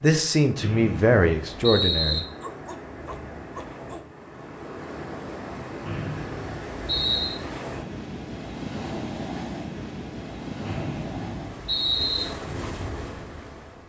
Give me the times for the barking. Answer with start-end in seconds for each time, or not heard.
2.4-4.2.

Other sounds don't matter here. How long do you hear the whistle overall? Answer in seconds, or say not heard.
5 s.